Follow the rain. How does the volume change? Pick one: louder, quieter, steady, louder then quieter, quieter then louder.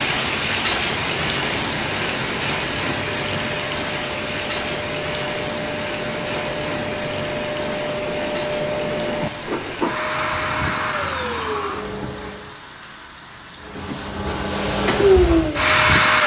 quieter.